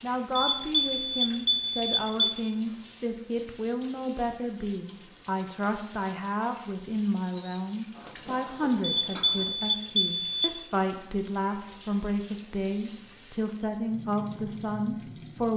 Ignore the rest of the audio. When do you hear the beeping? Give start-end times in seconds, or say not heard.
0.3-2.4, 8.8-10.5.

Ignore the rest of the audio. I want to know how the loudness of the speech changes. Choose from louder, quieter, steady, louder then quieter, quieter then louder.
steady.